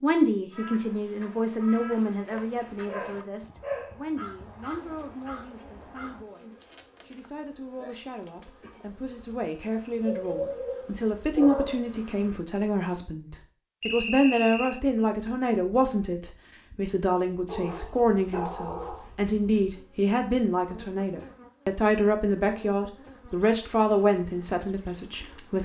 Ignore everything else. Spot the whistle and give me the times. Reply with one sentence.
The whistle can be heard from 13.8 to 14.8 s.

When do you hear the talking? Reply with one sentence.
The talking can be heard from 0.0 to 25.6 s.